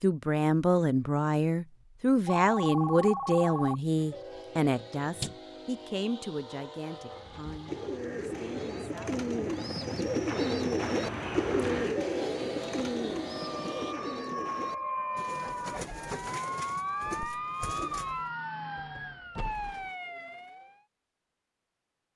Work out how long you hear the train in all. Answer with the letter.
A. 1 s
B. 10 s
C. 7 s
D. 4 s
B.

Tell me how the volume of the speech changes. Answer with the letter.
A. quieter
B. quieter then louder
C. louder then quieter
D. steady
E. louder
A.